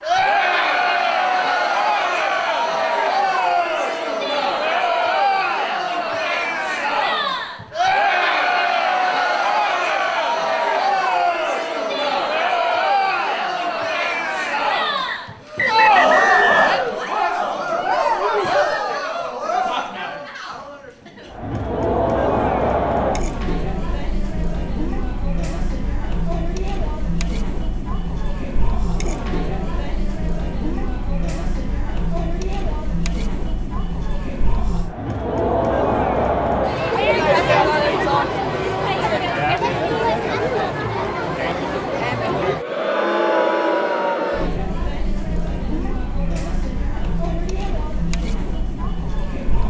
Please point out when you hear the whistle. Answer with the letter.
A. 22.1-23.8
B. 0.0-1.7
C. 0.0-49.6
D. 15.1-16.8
D.